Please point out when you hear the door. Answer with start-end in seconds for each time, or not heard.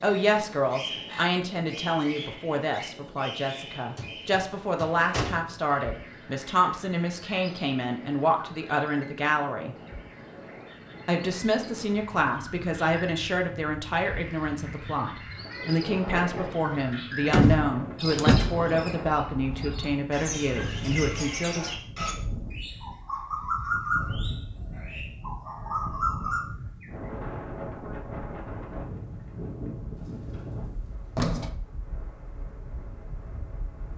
4.0-5.6, 17.3-18.7, 29.9-31.6.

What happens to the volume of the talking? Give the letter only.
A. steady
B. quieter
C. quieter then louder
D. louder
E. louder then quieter
A.